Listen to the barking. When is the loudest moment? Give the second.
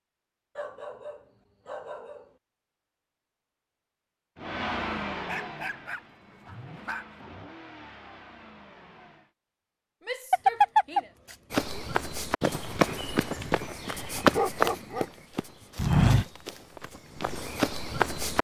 11 s.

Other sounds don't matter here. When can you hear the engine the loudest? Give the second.
5 s.